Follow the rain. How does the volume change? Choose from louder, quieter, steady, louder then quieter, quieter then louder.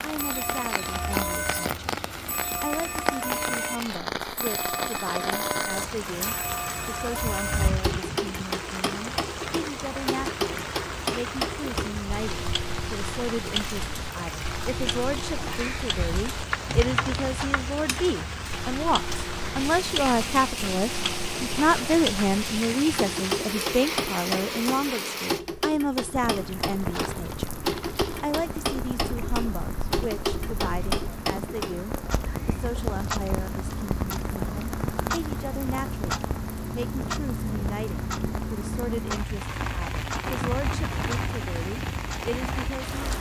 steady.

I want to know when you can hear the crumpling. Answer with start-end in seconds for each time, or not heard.
16.6-17.5, 26.2-28.2.